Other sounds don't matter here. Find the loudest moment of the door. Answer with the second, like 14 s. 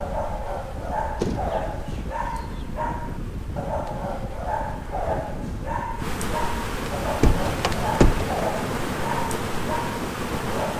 8 s.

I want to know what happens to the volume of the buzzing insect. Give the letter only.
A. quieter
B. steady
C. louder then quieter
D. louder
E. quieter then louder
D.